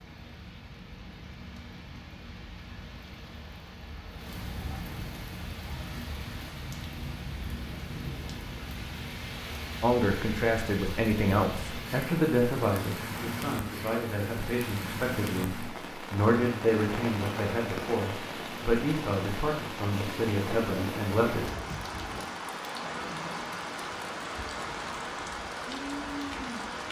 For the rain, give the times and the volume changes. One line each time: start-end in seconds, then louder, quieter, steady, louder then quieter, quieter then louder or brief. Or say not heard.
0.0-26.8 louder.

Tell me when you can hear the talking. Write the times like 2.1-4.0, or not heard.
9.8-21.5.